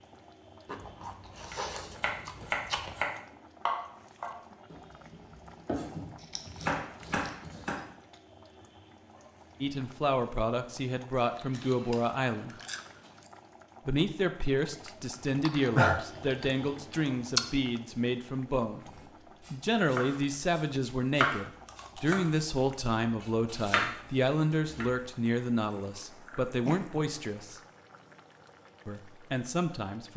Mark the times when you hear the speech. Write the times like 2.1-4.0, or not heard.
9.6-12.6, 13.8-18.9, 19.5-27.6, 28.9-30.1.